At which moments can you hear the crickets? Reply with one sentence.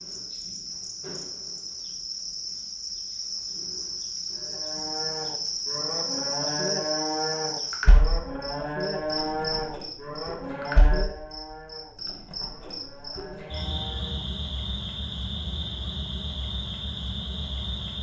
The crickets can be heard from 0.0 to 17.9 s.